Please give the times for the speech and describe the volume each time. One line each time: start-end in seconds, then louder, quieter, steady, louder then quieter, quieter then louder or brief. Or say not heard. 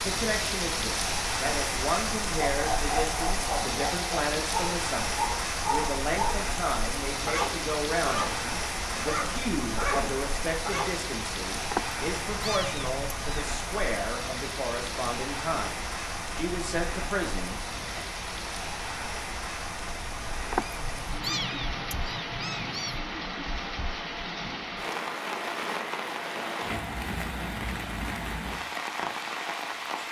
0.0-18.1 steady.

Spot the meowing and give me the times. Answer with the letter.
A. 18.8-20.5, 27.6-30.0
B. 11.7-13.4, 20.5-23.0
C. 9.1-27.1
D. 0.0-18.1
B.